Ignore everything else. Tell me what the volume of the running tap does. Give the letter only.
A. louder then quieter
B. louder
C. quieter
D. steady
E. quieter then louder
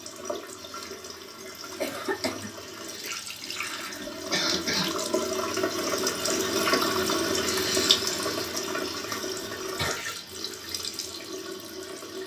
A.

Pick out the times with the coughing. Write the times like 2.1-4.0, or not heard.
1.8-2.5, 4.3-5.0, 9.6-10.1.